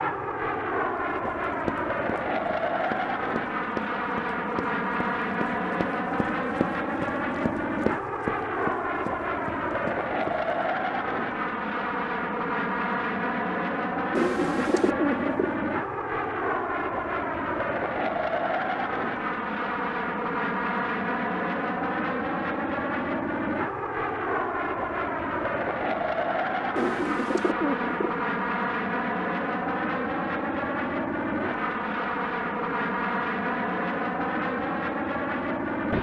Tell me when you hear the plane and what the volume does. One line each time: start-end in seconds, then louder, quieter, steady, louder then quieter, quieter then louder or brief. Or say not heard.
0.0-35.9 steady.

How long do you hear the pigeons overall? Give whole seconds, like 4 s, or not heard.
3 s.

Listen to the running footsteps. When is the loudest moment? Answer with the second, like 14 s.
8 s.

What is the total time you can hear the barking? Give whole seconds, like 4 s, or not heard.
not heard.